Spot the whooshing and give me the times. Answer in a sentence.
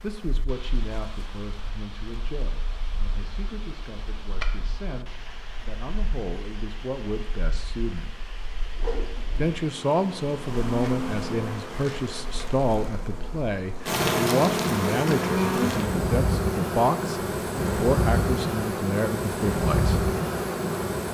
You can hear the whooshing from 8.8 to 9.6 s.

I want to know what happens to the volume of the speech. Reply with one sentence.
The volume of the speech goes up.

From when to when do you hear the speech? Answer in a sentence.
You can hear the speech from 0.0 to 8.2 s and from 9.3 to 20.1 s.